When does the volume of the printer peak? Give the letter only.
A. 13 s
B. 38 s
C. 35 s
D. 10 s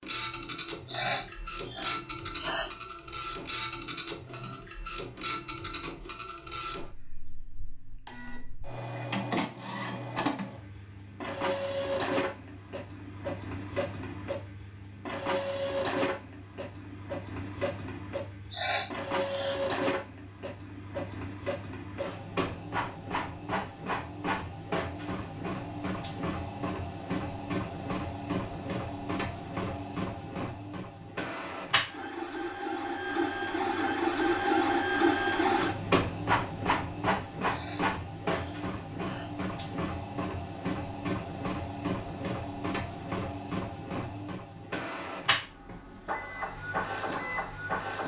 C.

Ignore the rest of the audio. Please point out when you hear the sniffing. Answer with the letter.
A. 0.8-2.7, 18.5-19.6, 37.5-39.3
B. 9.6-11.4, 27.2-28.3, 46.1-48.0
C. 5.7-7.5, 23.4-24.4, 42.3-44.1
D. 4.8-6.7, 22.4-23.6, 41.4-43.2
A.